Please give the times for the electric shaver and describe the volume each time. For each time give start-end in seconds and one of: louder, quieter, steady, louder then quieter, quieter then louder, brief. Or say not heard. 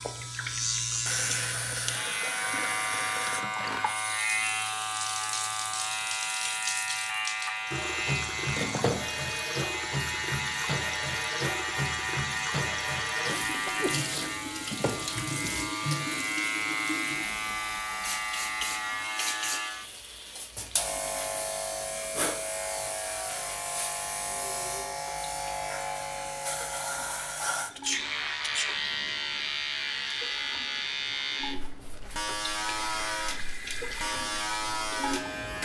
0.0-35.6 steady.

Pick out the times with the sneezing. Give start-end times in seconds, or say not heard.
13.5-14.4, 27.8-28.6.